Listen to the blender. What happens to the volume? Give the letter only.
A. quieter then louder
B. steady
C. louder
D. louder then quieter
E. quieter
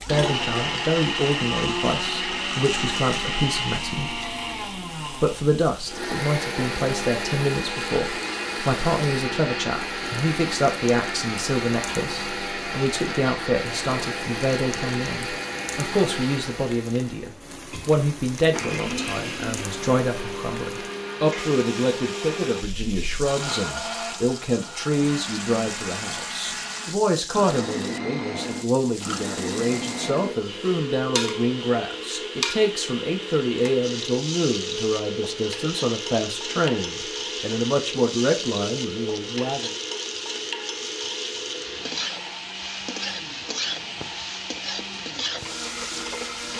E.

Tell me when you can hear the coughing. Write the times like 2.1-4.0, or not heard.
not heard.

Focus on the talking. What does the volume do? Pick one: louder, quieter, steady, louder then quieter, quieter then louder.
steady.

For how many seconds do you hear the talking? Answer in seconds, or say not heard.
39 s.